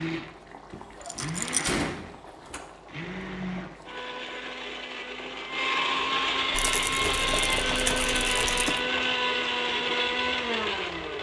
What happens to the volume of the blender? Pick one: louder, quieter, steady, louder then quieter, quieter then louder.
louder.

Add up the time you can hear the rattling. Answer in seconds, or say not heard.
3 s.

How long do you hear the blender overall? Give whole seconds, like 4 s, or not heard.
11 s.